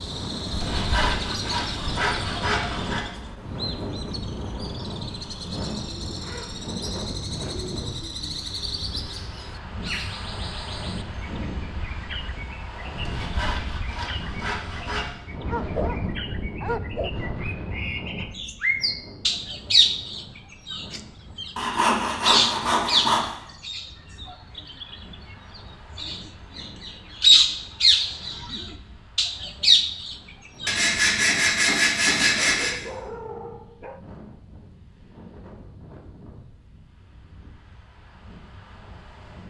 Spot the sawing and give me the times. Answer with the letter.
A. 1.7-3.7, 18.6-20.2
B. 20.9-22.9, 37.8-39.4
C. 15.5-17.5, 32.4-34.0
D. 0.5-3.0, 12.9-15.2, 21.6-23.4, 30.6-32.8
D.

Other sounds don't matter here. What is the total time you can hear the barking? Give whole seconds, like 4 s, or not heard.
4 s.